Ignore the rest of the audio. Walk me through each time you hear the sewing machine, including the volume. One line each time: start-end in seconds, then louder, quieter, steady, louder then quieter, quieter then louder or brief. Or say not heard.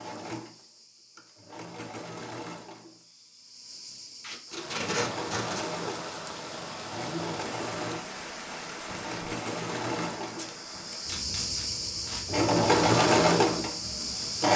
0.0-14.5 louder.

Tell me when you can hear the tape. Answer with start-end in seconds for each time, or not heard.
4.2-5.7, 10.2-12.2.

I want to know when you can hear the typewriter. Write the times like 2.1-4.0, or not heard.
not heard.